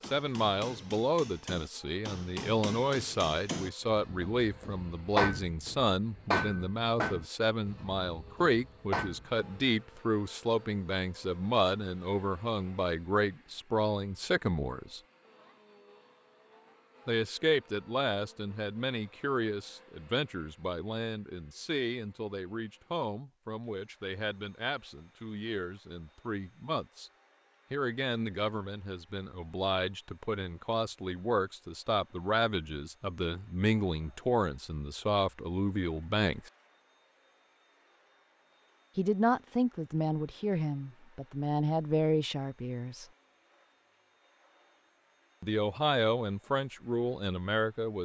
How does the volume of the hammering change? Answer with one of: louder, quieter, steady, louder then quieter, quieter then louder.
louder then quieter.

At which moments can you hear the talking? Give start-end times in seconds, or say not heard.
0.1-15.0, 17.1-27.1, 27.7-36.5, 39.0-43.0, 45.4-48.0.